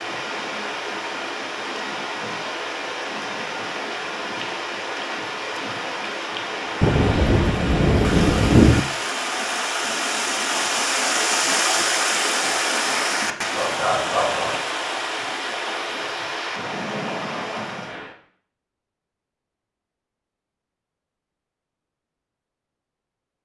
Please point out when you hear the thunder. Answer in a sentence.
You can hear the thunder from 6.8 to 8.8 s.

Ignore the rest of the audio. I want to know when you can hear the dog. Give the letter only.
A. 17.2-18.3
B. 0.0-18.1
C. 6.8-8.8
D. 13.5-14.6
D.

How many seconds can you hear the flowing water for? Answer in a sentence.
You can hear the flowing water for 18 seconds altogether.